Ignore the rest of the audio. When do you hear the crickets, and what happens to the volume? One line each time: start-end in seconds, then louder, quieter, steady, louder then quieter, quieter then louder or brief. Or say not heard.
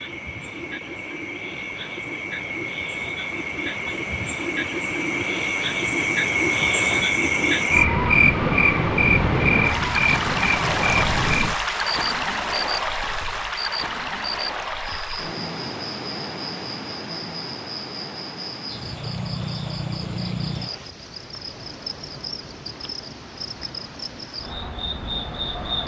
0.0-25.8 louder then quieter.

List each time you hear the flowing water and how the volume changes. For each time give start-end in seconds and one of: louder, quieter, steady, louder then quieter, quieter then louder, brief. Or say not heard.
0.0-25.8 louder then quieter.